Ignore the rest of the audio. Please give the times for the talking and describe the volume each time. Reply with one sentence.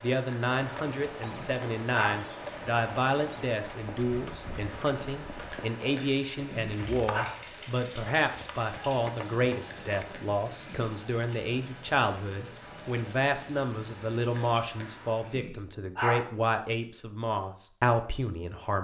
You can hear the talking from 0.0 to 18.7 s, at a steady volume.